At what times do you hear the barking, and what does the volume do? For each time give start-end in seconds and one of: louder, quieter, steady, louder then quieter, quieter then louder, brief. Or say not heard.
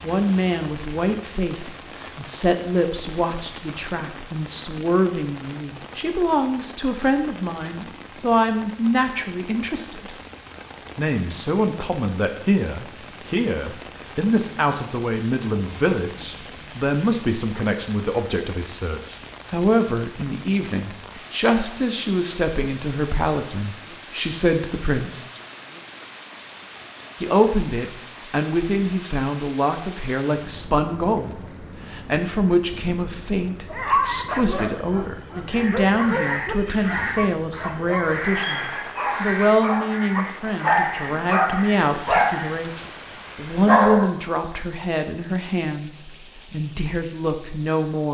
33.7-44.0 louder.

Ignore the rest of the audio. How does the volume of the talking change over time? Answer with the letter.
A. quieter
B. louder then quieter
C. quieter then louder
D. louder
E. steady
E.